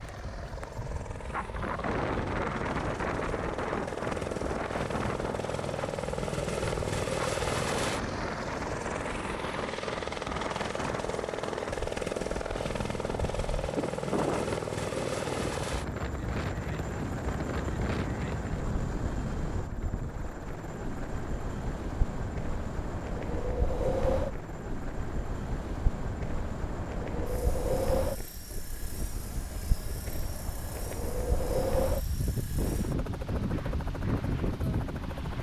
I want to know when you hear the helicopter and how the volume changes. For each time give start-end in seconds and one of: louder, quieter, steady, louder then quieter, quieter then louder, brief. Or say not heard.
0.0-35.3 quieter.